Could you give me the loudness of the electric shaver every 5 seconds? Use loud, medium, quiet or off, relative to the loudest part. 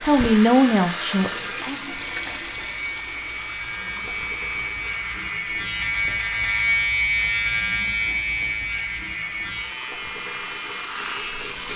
medium, loud, medium.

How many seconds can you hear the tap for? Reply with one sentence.
You can hear the tap for 12 seconds altogether.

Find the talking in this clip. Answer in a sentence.
You can hear the talking from 0.0 to 1.8 s.